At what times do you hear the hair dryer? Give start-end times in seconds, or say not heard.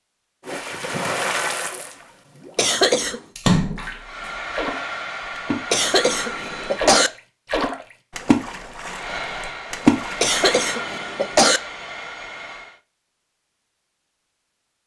4.0-7.0, 8.9-12.8.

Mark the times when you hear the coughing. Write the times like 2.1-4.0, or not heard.
2.5-3.2, 5.7-7.1, 10.2-11.6.